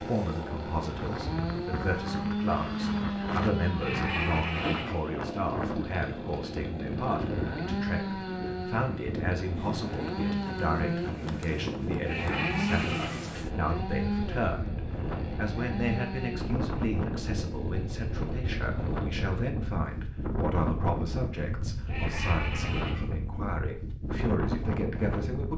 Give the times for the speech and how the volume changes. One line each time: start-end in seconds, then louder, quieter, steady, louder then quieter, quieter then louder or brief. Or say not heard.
0.0-25.5 steady.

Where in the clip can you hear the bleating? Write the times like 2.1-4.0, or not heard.
3.8-5.1, 12.0-13.3, 21.9-23.1.